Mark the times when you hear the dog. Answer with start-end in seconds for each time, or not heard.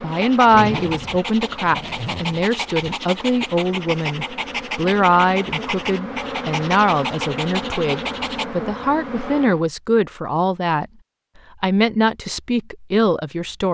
0.1-8.4.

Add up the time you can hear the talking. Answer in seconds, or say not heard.
13 s.